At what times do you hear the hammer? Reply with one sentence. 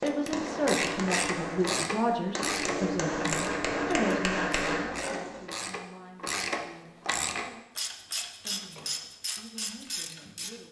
You can hear the hammer from 0.0 to 5.5 s.